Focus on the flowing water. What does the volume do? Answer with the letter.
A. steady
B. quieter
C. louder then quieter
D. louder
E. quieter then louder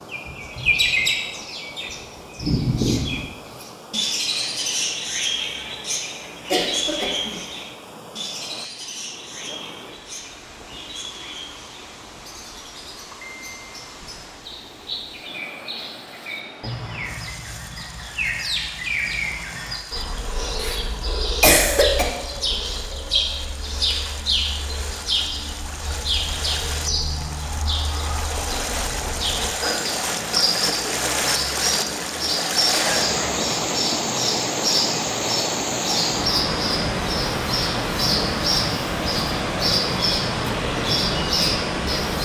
D.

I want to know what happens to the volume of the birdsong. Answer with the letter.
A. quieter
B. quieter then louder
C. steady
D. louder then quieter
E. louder
B.